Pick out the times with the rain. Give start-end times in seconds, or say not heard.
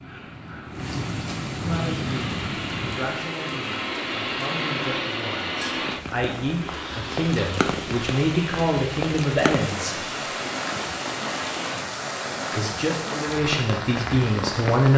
0.0-14.9.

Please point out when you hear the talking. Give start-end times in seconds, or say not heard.
1.6-10.0, 12.5-14.9.